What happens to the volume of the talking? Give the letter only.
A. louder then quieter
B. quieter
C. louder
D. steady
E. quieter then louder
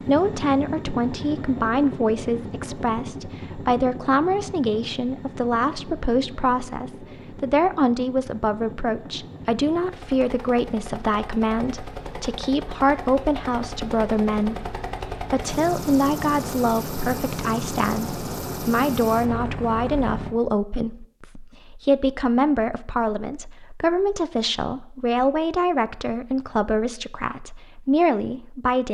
D.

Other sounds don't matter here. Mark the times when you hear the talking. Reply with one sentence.
You can hear the talking from 0.1 to 28.8 s.